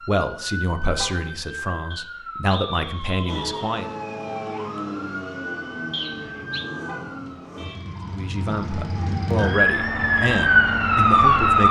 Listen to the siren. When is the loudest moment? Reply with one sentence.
The volume of the siren peaks at 11 seconds.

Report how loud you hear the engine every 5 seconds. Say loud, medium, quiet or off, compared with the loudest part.
loud, loud, off.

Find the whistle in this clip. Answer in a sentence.
You can hear the whistle from 1.9 to 3.6 s and from 5.9 to 6.7 s.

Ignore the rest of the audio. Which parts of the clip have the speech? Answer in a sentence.
The speech can be heard from 0.0 to 4.0 s and from 8.1 to 11.6 s.